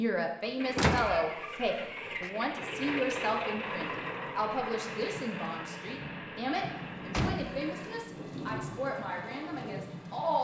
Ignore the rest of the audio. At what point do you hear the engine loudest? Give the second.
3 s.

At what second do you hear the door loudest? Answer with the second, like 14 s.
1 s.